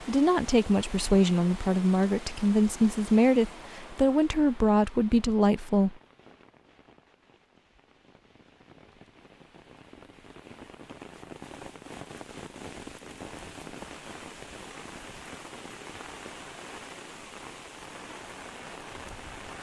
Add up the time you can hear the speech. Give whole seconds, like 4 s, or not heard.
6 s.